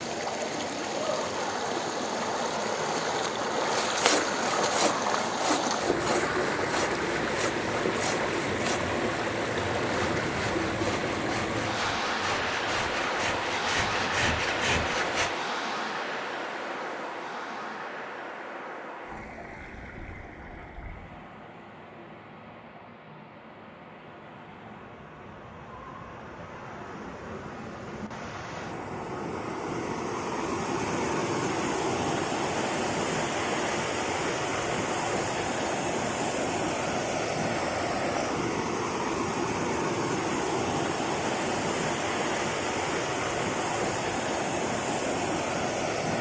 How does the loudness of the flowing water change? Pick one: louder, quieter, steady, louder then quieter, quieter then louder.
quieter then louder.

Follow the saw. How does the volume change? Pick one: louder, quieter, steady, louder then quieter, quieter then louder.
quieter then louder.